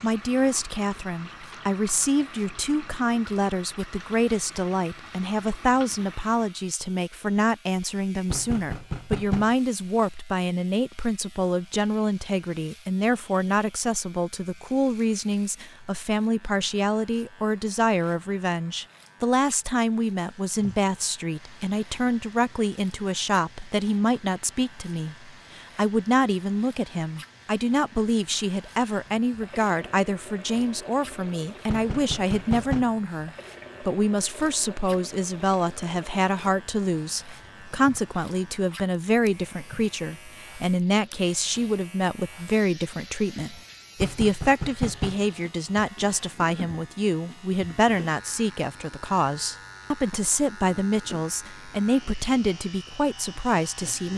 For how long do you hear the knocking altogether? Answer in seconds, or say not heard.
4 s.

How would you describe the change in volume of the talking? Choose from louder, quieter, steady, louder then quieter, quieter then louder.
steady.